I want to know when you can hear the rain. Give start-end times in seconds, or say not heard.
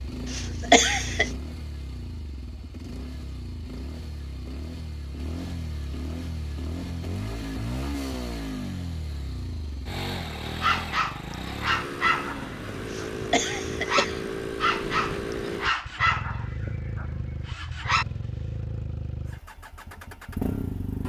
not heard.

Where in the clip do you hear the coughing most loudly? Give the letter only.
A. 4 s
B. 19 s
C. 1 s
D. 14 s
C.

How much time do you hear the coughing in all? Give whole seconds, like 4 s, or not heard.
2 s.